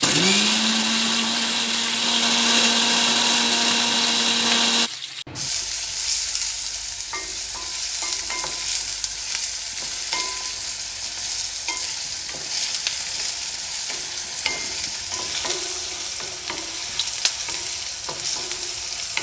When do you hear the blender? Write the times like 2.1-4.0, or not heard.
0.0-4.9.